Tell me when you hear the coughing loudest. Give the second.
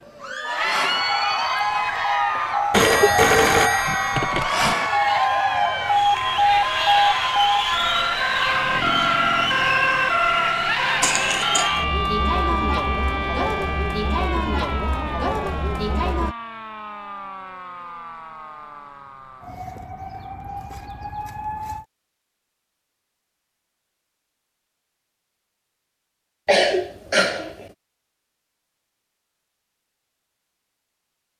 27 s.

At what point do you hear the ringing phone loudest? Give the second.
3 s.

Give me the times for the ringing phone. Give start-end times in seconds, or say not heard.
2.7-4.8.